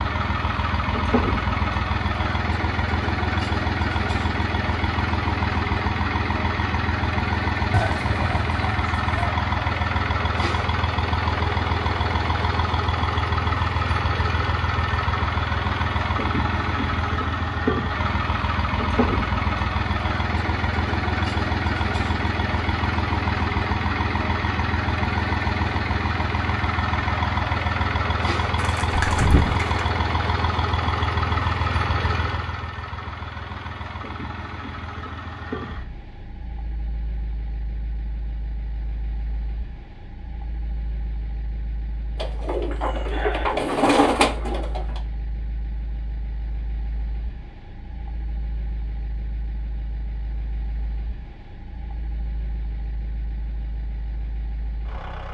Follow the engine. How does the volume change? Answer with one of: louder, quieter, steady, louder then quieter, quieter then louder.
quieter.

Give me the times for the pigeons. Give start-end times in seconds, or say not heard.
7.7-9.3, 28.6-29.9, 42.1-45.0.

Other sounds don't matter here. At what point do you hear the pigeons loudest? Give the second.
44 s.